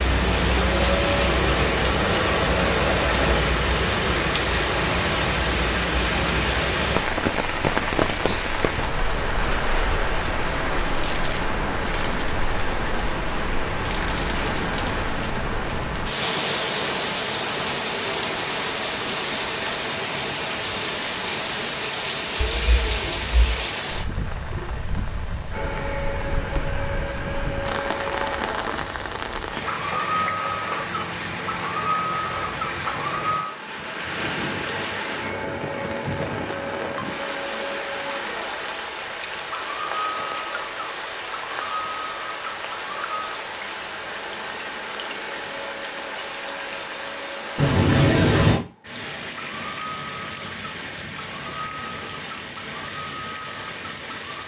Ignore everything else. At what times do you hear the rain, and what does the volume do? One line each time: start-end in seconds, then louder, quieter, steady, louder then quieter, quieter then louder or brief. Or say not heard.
0.0-54.4 quieter.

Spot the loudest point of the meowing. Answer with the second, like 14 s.
48 s.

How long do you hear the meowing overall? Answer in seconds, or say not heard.
2 s.